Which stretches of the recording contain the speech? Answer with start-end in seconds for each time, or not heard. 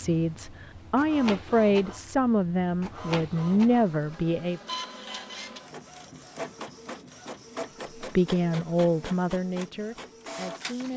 0.0-4.6, 8.0-10.9.